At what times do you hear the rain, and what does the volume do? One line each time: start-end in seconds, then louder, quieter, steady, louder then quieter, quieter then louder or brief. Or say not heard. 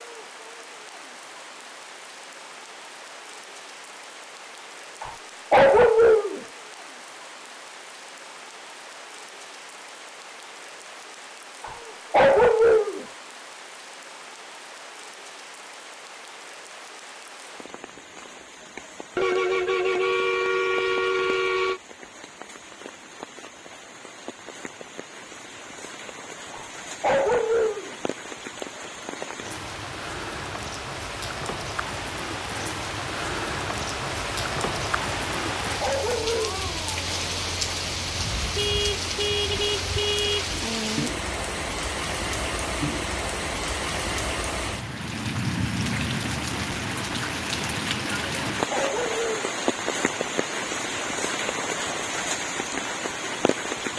0.0-53.9 louder.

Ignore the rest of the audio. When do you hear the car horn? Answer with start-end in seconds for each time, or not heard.
19.1-21.8, 38.5-40.5.